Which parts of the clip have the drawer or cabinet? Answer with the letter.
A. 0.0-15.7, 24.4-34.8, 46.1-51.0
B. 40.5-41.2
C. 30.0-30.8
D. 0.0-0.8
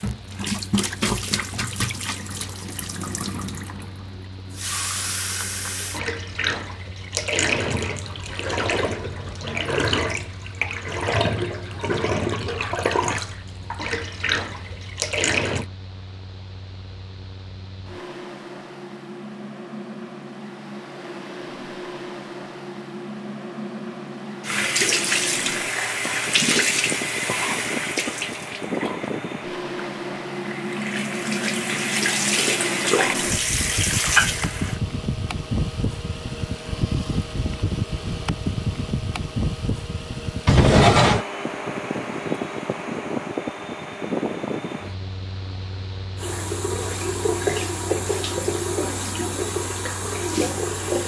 B.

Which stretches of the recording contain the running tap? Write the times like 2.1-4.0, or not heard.
0.0-15.7, 24.4-34.8, 46.1-51.0.